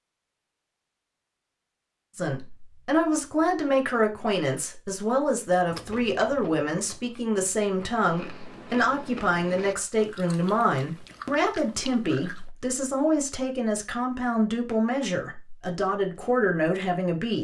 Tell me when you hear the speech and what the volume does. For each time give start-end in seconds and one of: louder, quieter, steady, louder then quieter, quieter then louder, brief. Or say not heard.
2.1-17.4 steady.